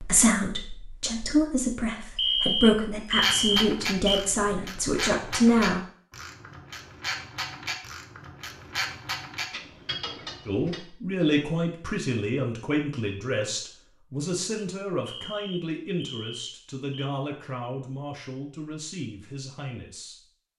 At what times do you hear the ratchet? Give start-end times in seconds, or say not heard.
3.1-10.8.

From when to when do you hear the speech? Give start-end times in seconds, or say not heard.
0.0-5.8, 10.4-20.2.